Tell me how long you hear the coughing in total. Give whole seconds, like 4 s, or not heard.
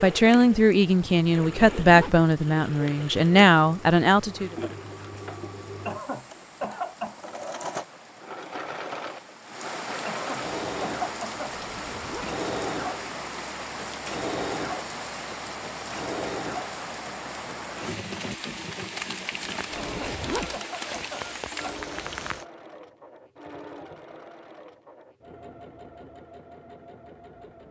5 s.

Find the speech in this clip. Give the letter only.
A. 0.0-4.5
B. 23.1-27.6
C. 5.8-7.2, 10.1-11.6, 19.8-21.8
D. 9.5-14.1
A.